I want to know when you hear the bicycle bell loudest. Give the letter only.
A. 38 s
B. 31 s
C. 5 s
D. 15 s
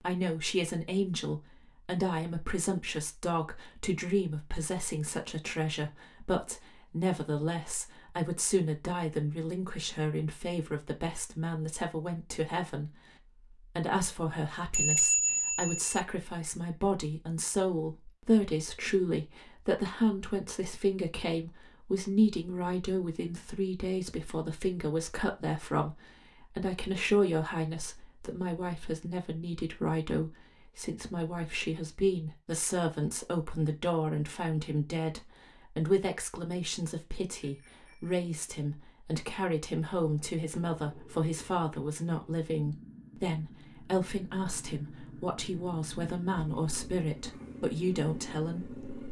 D.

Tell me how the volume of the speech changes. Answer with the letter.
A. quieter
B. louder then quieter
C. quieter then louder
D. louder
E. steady
E.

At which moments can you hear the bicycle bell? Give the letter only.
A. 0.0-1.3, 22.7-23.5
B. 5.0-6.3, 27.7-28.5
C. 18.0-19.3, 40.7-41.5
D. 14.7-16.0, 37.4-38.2
D.